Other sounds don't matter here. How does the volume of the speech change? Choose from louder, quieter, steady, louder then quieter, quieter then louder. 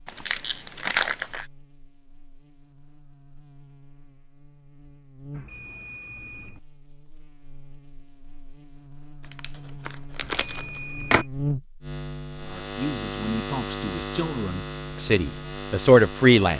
louder.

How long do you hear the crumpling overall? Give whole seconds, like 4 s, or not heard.
3 s.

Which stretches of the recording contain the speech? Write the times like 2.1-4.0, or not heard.
12.4-16.5.